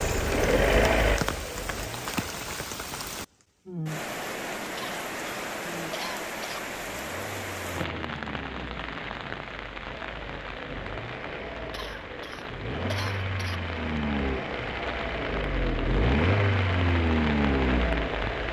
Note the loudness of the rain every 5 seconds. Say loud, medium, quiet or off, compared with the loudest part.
loud, loud, medium, loud.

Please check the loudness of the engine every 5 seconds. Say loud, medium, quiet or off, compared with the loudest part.
loud, quiet, medium, loud.